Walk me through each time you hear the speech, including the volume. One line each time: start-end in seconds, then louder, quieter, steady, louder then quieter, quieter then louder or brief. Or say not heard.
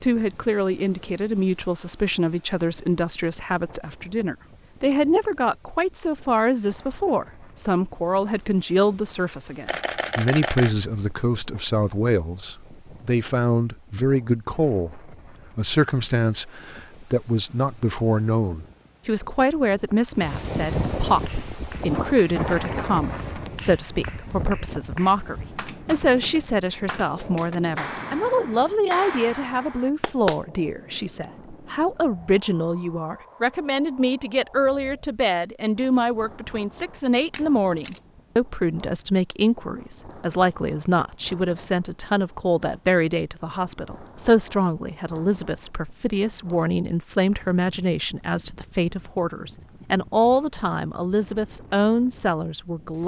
0.0-53.0 steady.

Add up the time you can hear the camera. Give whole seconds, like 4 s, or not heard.
2 s.